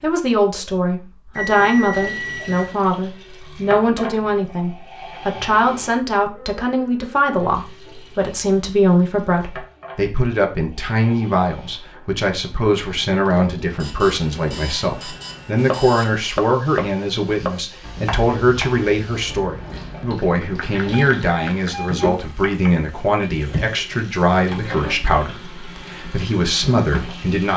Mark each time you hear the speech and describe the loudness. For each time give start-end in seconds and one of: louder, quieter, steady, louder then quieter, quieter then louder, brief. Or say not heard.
0.0-27.5 steady.